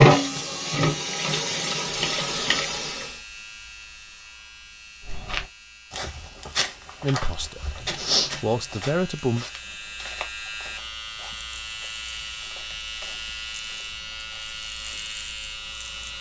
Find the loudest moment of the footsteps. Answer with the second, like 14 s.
8 s.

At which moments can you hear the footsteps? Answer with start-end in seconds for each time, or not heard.
5.0-15.1.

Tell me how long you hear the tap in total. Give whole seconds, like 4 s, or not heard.
3 s.